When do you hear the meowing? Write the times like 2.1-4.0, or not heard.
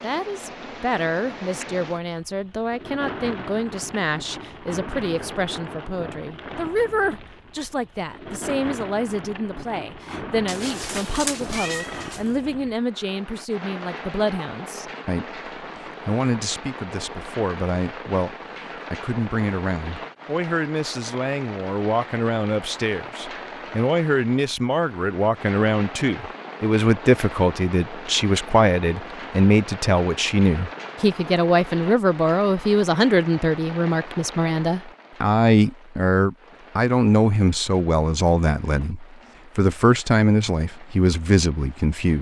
10.4-12.3.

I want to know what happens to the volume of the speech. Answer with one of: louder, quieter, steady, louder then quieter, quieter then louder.
louder.